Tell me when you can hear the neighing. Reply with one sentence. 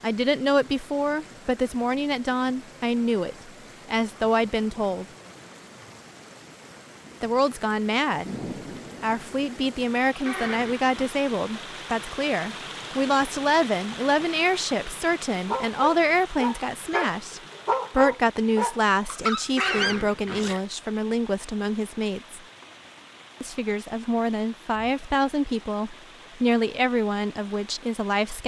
The neighing can be heard from 10.2 to 11.2 s and from 19.6 to 20.6 s.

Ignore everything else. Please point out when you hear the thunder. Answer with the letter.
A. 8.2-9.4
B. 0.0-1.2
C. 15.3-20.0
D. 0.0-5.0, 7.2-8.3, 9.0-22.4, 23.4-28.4
A.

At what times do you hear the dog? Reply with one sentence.
The dog can be heard from 15.3 to 20.0 s.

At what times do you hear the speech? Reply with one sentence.
The speech can be heard from 0.0 to 5.0 s, from 7.2 to 8.3 s, from 9.0 to 22.4 s and from 23.4 to 28.4 s.